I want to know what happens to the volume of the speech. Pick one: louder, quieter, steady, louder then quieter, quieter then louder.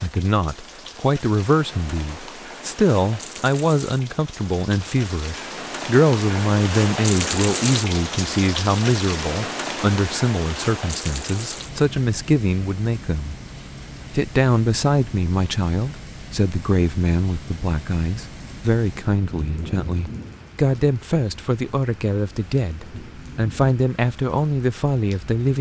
steady.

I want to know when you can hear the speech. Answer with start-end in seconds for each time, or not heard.
0.0-13.3, 14.1-25.5.